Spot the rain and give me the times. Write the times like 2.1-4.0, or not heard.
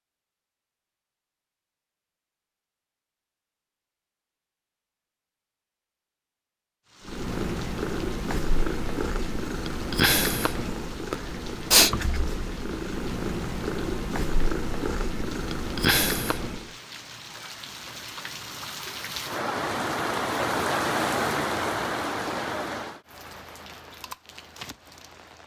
6.8-25.4.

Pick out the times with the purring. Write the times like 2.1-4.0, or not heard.
7.0-16.7.